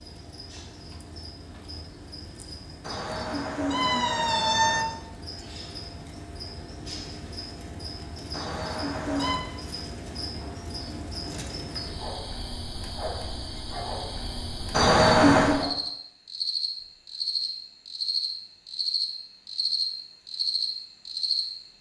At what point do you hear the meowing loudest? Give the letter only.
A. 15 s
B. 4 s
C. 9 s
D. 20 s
A.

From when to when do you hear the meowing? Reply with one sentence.
The meowing can be heard from 2.8 to 4.8 s, from 8.3 to 9.4 s and from 14.7 to 15.6 s.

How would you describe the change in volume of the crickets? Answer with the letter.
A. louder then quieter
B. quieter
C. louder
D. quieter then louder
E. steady
C.